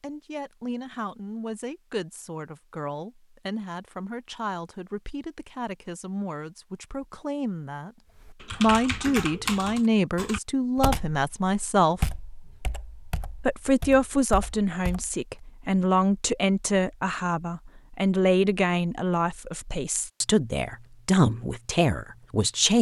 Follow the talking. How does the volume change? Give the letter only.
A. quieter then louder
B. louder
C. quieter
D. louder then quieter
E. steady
B.